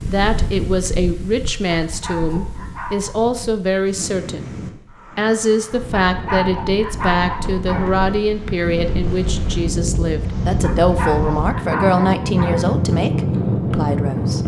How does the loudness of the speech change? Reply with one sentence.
The volume of the speech stays about the same.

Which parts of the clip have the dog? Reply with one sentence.
The dog can be heard from 1.9 to 3.2 s, from 6.0 to 8.0 s and from 10.6 to 12.7 s.